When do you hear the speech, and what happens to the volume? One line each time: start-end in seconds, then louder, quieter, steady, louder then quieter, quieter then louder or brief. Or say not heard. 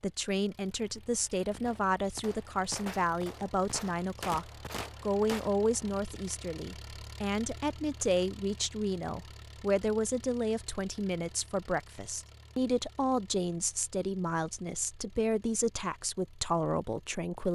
0.0-17.4 steady.